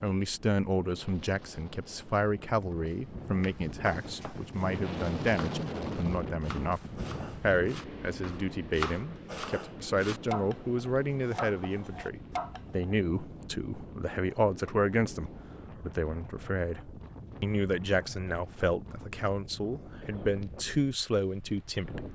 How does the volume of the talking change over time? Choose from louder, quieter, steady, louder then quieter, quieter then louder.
steady.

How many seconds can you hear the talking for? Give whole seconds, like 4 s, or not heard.
22 s.